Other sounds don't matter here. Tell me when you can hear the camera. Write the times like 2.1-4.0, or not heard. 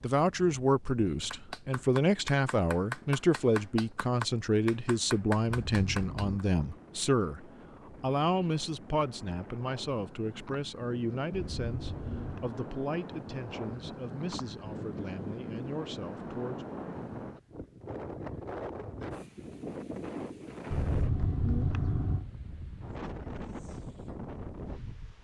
5.5-6.4, 11.3-12.6, 20.7-22.2.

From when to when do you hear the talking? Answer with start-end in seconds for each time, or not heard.
0.0-16.6.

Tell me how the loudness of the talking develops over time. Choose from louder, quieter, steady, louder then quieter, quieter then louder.
quieter.